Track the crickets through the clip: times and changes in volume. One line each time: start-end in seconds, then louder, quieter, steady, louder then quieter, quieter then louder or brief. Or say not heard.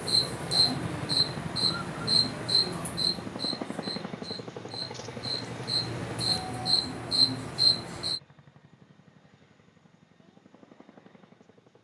0.0-8.2 quieter then louder.